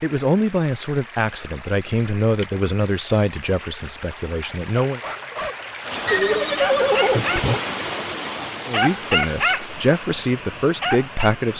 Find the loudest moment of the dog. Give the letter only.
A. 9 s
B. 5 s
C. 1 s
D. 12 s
A.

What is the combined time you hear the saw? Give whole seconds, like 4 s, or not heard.
not heard.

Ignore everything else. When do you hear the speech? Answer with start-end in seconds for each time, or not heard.
0.0-5.0, 8.7-11.5.